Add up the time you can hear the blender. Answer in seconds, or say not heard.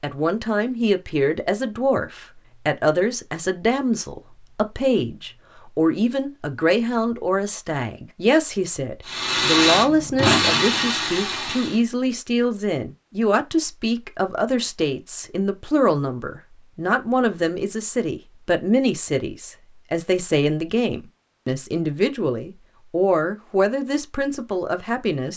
3 s.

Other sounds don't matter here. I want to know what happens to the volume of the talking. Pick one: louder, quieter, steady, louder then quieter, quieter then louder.
steady.